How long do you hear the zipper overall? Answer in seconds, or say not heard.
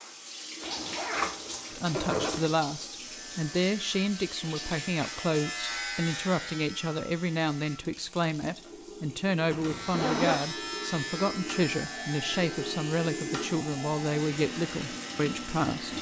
3 s.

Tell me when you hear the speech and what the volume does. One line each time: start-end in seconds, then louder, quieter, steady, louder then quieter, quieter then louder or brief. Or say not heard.
1.7-15.9 steady.